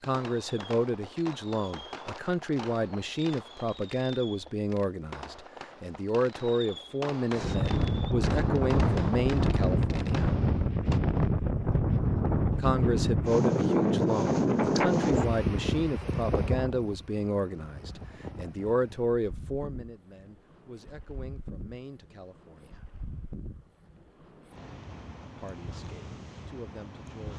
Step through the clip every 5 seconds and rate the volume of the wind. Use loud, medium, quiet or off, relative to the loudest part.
off, loud, loud, medium, quiet, quiet.